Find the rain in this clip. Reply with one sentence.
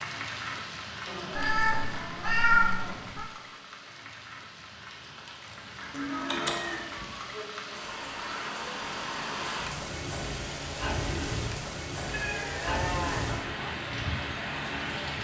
You can hear the rain from 0.0 to 15.2 s.